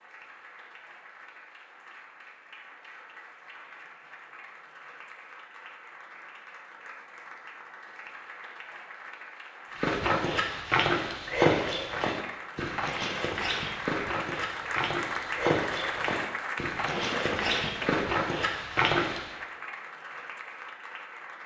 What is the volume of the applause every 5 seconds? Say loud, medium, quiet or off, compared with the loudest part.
quiet, medium, loud, loud, medium.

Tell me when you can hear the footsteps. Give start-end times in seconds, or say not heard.
9.8-19.4.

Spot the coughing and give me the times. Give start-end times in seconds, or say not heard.
16.9-18.1.